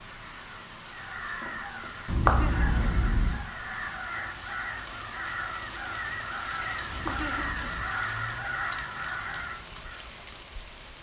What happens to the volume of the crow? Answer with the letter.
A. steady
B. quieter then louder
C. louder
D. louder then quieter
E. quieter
C.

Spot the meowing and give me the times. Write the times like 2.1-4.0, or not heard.
2.0-3.5, 6.8-7.9.